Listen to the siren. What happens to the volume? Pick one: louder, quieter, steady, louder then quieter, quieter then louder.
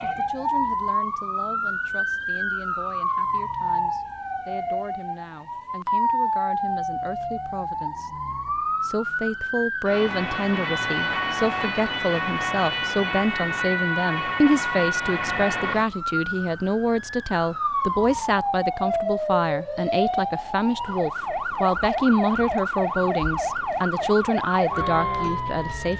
steady.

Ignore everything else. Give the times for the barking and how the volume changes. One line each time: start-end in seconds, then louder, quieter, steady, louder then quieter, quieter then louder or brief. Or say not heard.
not heard.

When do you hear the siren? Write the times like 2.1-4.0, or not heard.
0.0-25.9.